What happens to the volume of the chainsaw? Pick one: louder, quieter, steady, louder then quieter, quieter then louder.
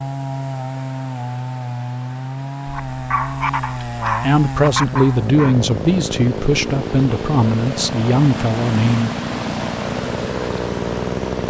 steady.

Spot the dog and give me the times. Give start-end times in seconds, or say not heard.
2.6-5.5.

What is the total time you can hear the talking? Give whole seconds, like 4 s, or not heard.
5 s.